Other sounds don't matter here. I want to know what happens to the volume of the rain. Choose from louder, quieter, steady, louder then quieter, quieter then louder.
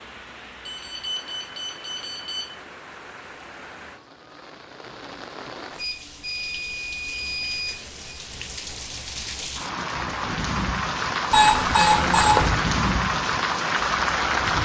louder.